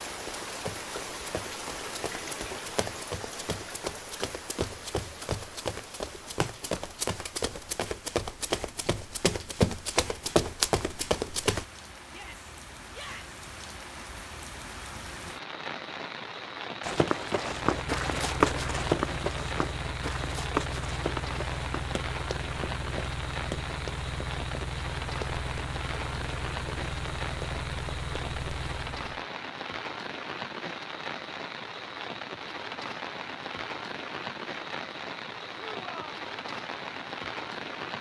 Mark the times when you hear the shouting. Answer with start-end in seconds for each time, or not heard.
12.1-13.3, 35.5-36.2.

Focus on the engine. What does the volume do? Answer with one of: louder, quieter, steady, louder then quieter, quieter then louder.
steady.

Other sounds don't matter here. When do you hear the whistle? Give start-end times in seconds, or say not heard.
not heard.